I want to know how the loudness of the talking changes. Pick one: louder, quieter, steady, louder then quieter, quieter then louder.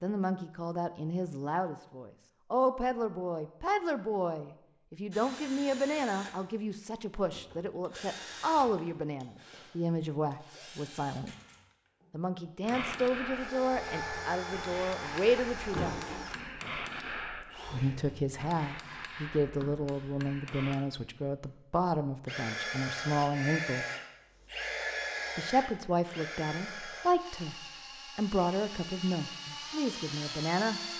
steady.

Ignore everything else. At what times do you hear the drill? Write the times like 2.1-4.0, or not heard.
5.1-18.4, 22.2-30.9.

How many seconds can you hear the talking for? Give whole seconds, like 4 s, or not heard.
27 s.